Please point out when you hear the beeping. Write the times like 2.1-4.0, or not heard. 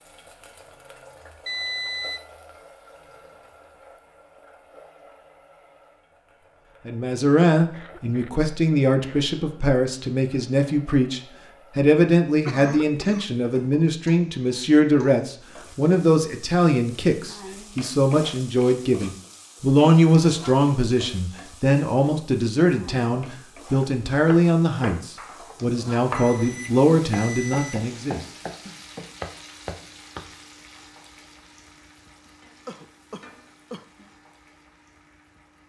1.4-2.2, 26.1-27.9.